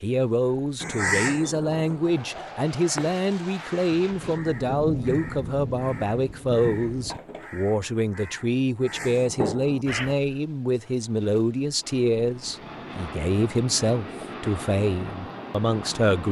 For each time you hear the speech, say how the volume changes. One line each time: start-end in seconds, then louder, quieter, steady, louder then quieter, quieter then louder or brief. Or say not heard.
0.0-16.2 steady.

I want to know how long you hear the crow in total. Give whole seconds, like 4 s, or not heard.
9 s.